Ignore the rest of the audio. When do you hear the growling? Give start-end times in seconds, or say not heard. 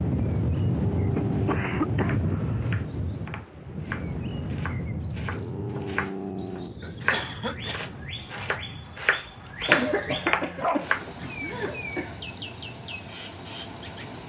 0.5-1.9, 5.2-6.9, 9.7-11.8.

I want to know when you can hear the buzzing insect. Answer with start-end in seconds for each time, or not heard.
not heard.